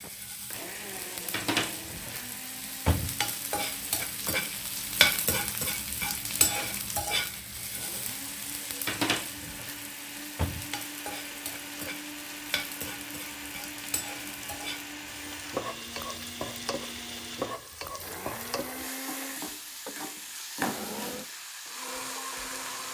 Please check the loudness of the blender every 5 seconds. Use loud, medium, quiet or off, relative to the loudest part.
medium, medium, loud, loud, loud.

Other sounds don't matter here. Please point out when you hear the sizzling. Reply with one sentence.
The sizzling can be heard from 0.0 to 22.9 s.